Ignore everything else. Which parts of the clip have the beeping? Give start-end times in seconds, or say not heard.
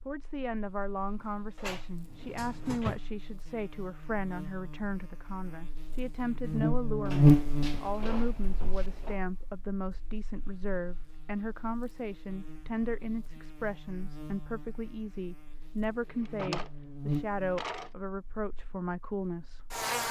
not heard.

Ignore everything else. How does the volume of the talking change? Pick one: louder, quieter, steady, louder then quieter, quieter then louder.
steady.